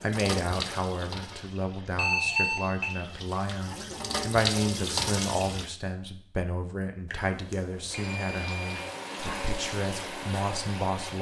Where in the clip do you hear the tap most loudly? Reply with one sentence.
The volume of the tap peaks at 5 seconds.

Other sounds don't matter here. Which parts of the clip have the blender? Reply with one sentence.
The blender can't be heard in this clip.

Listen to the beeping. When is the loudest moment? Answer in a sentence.
The loudest moment of the beeping is at 2 seconds.